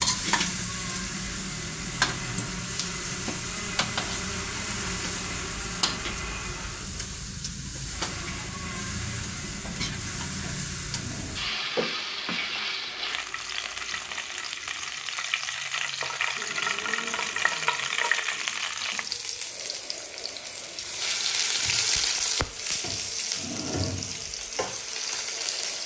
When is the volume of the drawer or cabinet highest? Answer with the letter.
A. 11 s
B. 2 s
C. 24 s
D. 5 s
C.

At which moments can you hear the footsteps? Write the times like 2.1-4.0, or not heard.
not heard.